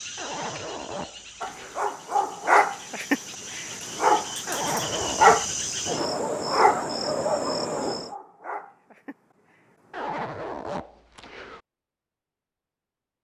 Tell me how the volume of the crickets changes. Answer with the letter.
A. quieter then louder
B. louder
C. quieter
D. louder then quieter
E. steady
B.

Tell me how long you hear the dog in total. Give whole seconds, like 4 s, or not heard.
9 s.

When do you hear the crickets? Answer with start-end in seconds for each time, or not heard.
0.0-8.2.